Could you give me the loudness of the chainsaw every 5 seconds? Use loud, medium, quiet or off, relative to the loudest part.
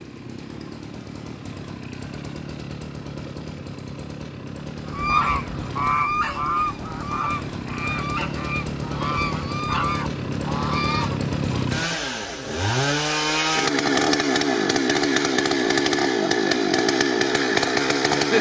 quiet, medium, loud, loud.